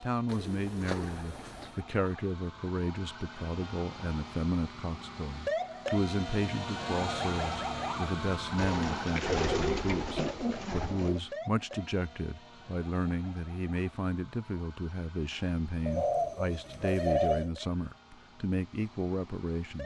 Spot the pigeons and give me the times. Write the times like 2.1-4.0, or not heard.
0.2-1.8, 8.6-11.2, 15.8-17.5.